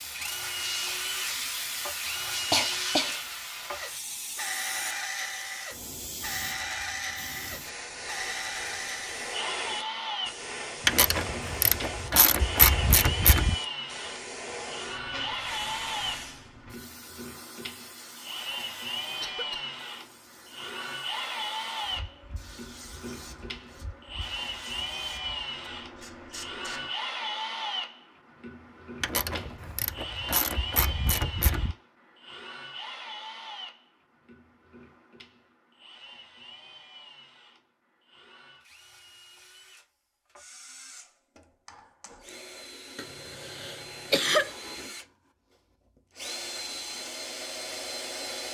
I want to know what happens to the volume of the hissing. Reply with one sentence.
The loudness of the hissing goes down.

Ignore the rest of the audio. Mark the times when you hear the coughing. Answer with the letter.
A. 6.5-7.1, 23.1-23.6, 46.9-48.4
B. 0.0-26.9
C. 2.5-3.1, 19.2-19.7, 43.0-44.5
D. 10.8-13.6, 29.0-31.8
C.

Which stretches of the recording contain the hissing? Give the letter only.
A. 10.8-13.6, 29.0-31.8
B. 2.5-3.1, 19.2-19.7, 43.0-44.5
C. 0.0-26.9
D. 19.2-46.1
C.